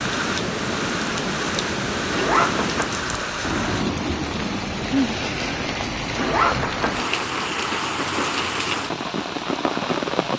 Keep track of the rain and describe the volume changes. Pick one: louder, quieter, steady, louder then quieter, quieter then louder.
steady.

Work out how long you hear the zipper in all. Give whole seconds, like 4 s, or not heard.
2 s.